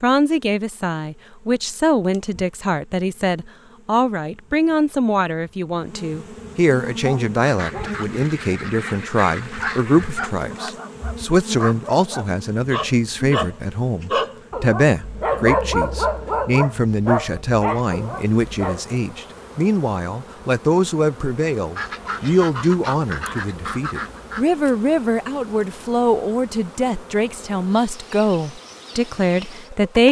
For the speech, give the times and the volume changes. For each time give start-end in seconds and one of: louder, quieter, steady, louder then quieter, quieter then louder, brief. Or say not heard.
0.0-30.0 steady.